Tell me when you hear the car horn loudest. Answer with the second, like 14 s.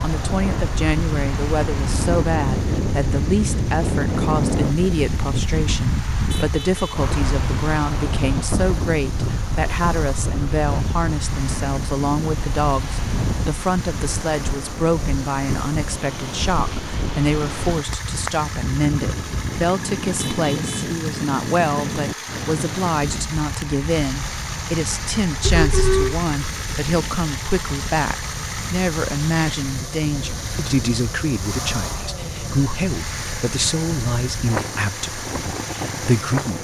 26 s.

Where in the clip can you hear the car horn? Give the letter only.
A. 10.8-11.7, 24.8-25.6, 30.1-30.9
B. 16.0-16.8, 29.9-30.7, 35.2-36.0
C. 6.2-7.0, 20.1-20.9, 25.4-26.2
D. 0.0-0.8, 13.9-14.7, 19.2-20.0
C.